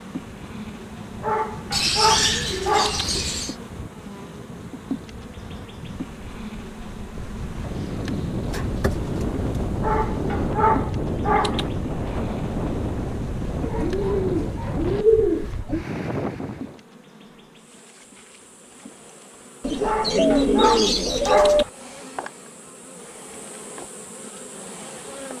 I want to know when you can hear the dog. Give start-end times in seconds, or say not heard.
1.2-3.1, 9.8-11.7, 19.8-21.7.